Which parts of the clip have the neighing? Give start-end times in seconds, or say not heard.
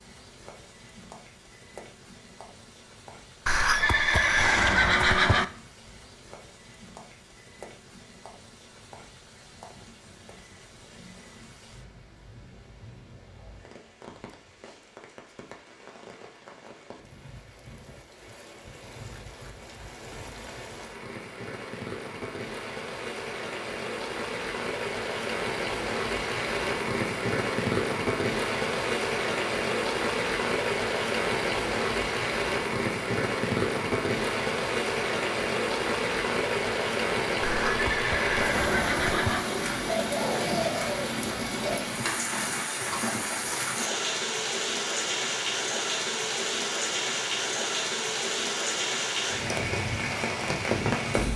3.5-5.5, 37.4-39.5.